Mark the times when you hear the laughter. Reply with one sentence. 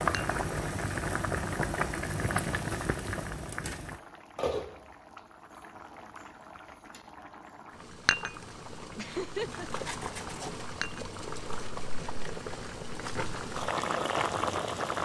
The laughter can be heard from 8.9 to 9.8 s.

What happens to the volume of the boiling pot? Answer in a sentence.
The volume of the boiling pot goes down, then up.